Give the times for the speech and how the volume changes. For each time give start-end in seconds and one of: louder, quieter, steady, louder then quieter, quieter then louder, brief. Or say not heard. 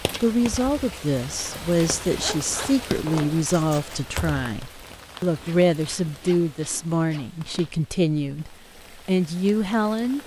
0.2-10.2 steady.